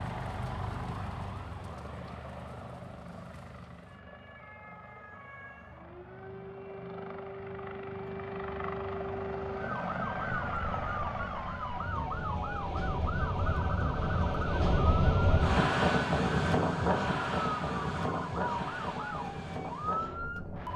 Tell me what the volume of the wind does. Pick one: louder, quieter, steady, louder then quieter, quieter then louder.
louder then quieter.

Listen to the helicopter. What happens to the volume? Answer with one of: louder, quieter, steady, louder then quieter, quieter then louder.
quieter then louder.